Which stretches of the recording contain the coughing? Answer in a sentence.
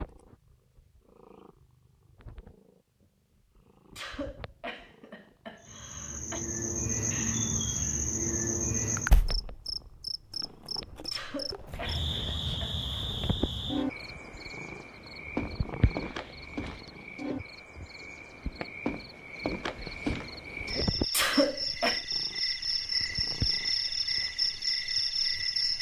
The coughing can be heard from 4.0 to 6.5 s, from 11.1 to 13.2 s and from 21.1 to 22.0 s.